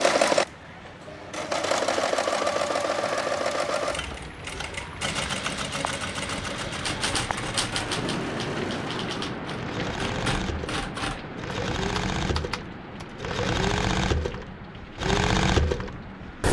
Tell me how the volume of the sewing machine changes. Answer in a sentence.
The volume of the sewing machine goes down, then up.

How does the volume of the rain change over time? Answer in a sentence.
The volume of the rain goes up, then down.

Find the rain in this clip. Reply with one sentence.
You can hear the rain from 0.2 to 16.4 s.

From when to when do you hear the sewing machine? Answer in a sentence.
You can hear the sewing machine from 0.0 to 16.4 s.